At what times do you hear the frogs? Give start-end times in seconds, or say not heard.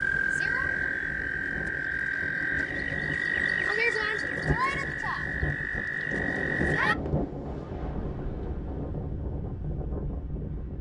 0.0-7.0.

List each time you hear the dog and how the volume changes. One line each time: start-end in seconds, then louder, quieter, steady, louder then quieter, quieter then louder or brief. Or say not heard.
not heard.